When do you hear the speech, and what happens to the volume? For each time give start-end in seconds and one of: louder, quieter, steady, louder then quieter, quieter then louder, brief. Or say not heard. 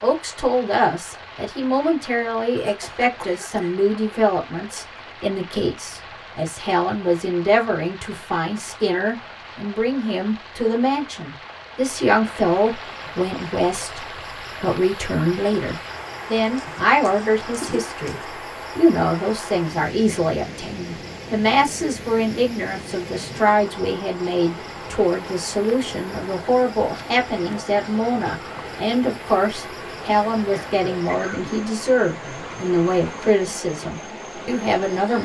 0.0-35.2 steady.